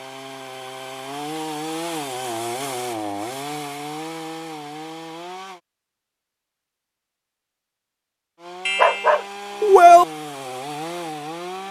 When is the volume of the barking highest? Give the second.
10 s.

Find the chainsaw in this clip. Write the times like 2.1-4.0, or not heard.
0.0-5.6, 8.3-11.6.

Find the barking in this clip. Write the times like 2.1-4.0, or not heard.
8.7-10.1.